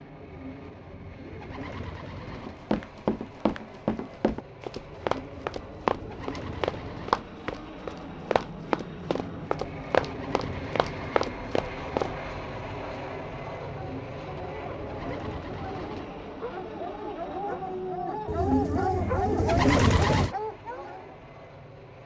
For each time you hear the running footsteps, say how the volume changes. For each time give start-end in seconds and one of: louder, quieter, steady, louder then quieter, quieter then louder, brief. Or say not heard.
2.4-12.1 steady.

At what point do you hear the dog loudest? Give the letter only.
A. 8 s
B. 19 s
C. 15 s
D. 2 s
B.